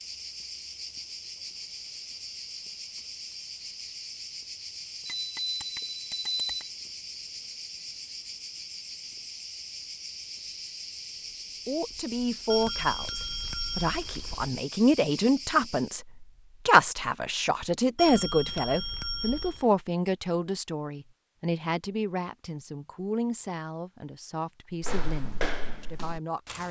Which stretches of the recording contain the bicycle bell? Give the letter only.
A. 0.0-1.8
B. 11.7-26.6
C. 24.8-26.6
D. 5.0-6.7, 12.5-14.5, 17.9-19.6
D.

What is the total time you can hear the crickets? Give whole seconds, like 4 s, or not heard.
16 s.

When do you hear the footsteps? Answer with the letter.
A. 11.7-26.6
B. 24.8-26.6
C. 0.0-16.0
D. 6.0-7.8
B.